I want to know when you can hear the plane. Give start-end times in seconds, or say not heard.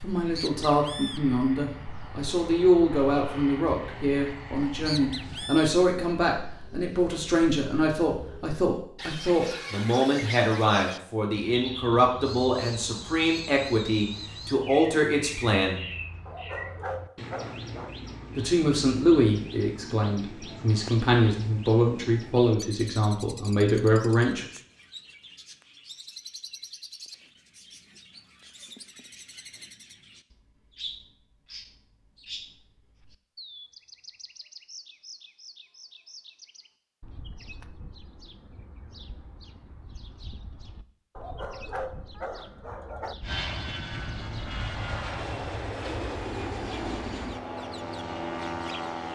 0.0-5.5, 43.2-49.1.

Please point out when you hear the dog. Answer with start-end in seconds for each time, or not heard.
16.2-17.9, 41.1-43.1.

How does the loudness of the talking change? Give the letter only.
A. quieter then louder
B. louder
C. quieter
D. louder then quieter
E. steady
E.